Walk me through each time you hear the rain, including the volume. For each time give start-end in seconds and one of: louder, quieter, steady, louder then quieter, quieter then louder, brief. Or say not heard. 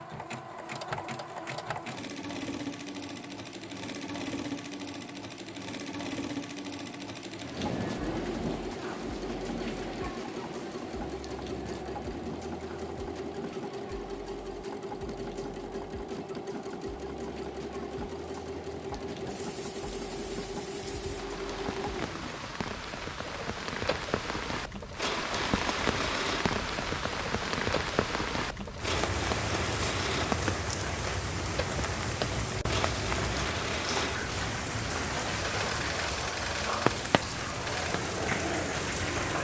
7.3-39.4 quieter then louder.